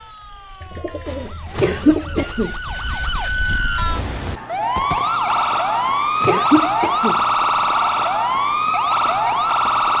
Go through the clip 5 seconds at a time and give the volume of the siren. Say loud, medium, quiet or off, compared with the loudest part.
medium, loud.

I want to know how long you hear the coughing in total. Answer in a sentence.
You can hear the coughing for 3 seconds altogether.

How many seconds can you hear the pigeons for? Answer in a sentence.
The pigeons can be heard for 2 seconds in total.